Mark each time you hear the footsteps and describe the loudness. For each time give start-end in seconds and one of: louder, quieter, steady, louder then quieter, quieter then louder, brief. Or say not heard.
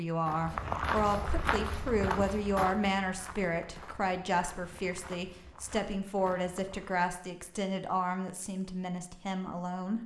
0.2-7.0 quieter.